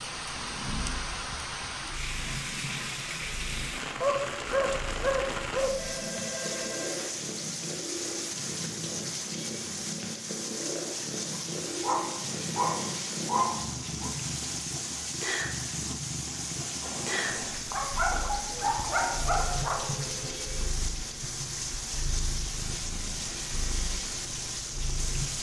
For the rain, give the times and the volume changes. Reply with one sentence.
The rain can be heard from 0.0 to 25.3 s, at a steady volume.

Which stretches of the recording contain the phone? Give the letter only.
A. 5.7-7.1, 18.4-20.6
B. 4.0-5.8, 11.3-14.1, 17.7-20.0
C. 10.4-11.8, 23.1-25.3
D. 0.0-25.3
A.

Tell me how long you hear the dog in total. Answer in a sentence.
You can hear the dog for 7 seconds altogether.